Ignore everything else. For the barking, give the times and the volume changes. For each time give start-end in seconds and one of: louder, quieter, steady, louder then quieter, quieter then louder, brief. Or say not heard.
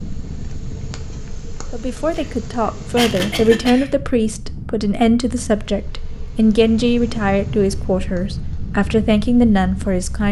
not heard.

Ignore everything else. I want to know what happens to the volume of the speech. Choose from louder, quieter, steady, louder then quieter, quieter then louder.
steady.